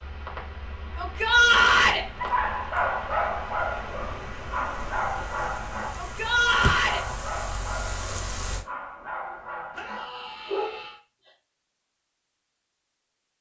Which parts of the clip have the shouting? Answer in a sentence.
You can hear the shouting from 0.9 to 2.0 s, from 6.0 to 7.0 s and from 9.8 to 11.0 s.